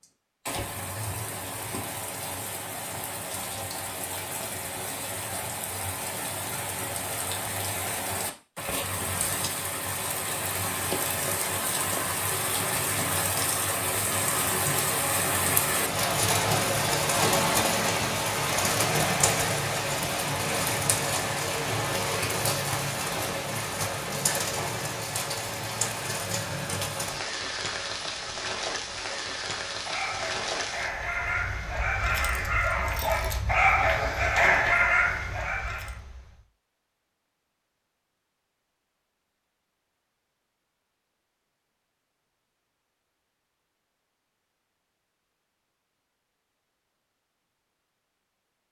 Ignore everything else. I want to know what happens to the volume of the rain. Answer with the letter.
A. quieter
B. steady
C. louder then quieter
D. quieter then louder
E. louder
C.